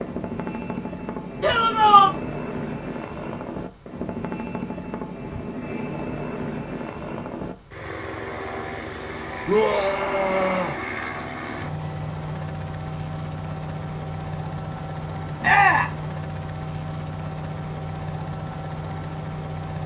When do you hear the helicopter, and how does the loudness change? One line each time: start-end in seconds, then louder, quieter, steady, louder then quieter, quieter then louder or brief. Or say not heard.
0.0-19.8 steady.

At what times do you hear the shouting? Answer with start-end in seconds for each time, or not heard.
1.4-2.1, 9.4-10.8, 15.4-15.9.